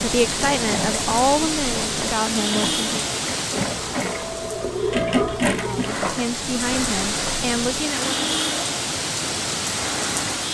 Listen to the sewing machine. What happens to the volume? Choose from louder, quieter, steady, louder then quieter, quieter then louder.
louder then quieter.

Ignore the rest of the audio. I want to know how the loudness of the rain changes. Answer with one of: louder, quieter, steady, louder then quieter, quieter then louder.
quieter then louder.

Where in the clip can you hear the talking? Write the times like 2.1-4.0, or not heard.
0.0-3.0, 5.5-8.3.